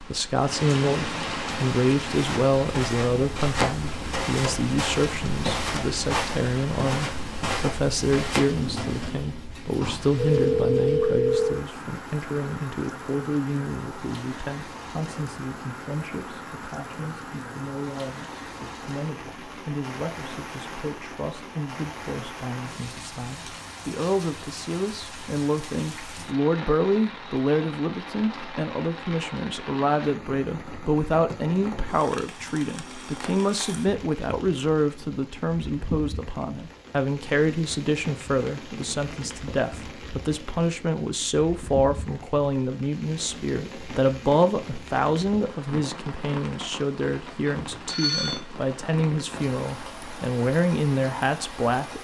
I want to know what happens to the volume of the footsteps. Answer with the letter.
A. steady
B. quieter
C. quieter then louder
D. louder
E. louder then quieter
A.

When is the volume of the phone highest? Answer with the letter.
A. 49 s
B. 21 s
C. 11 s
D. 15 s
C.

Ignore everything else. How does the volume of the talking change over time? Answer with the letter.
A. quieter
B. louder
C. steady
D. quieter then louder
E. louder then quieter
D.